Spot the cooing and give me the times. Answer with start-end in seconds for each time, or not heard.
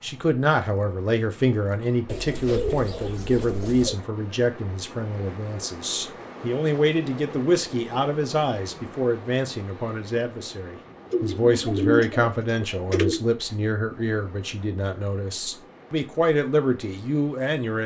2.0-4.0, 11.1-13.3.